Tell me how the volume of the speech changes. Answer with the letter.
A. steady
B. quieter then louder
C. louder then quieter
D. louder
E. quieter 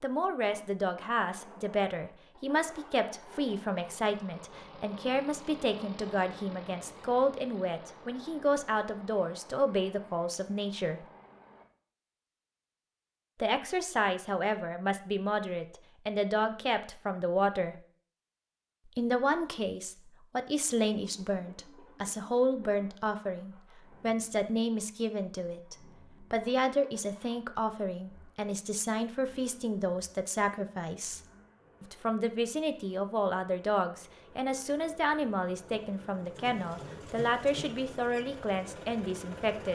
A.